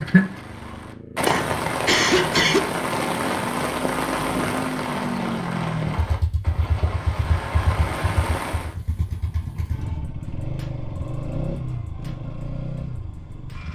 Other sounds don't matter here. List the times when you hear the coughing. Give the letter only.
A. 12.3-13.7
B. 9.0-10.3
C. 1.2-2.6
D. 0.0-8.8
C.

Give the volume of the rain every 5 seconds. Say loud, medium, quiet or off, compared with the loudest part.
loud, medium, off.